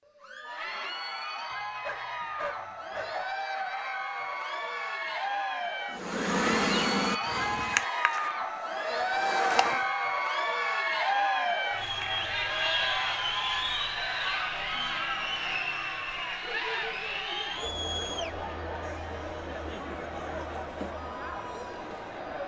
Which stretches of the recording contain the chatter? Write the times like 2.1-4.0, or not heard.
0.1-22.4.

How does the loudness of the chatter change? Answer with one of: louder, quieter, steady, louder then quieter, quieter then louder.
louder then quieter.